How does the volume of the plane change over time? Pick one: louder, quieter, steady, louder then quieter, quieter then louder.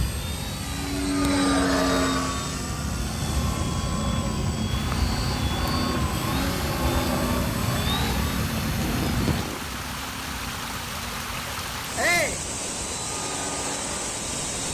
quieter.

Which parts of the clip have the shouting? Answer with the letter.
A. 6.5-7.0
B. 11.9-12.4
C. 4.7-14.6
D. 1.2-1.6
B.